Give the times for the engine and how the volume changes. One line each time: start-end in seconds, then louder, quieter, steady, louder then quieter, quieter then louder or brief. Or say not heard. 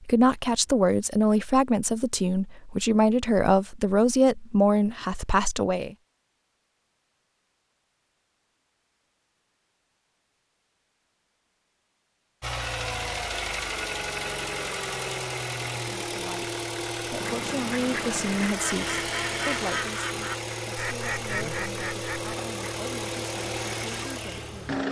12.4-24.8 steady.